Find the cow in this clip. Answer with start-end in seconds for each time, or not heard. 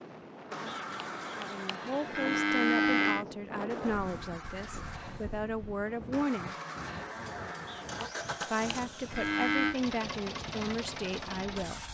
0.7-3.2, 7.7-9.8.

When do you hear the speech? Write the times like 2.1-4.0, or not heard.
1.4-6.5, 8.4-11.8.